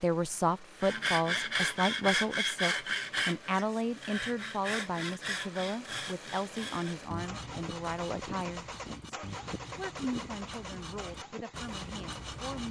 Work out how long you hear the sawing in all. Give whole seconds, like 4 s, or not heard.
12 s.